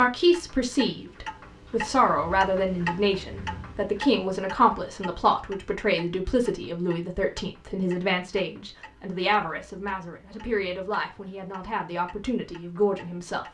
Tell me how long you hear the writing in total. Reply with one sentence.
The writing can't be heard in this clip.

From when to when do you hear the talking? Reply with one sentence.
The talking can be heard from 0.0 to 13.4 s.